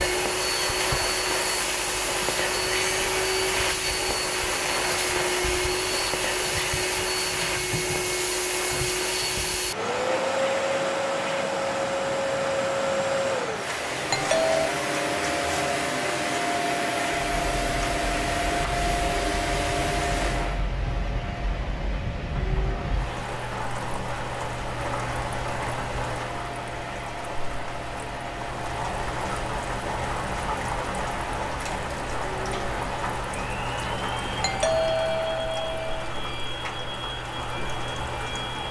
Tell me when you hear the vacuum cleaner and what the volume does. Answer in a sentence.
You can hear the vacuum cleaner from 0.0 to 38.6 s, getting quieter.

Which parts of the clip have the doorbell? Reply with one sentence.
The doorbell can be heard from 14.1 to 14.7 s and from 34.4 to 35.9 s.